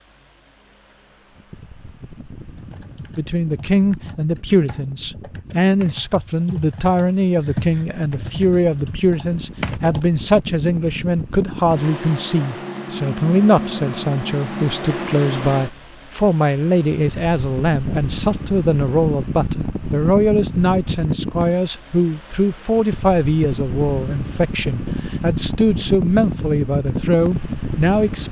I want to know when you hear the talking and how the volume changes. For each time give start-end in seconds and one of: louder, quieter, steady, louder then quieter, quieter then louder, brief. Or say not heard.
3.1-28.2 steady.